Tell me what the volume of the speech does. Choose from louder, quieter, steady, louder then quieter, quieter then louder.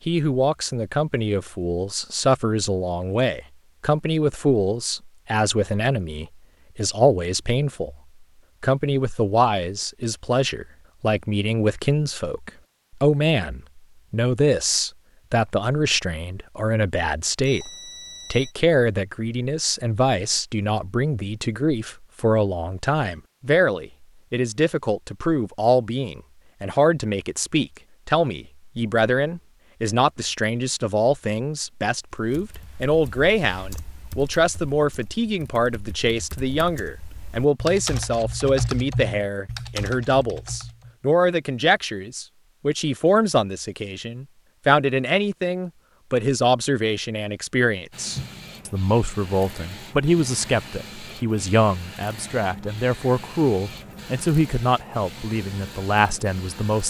steady.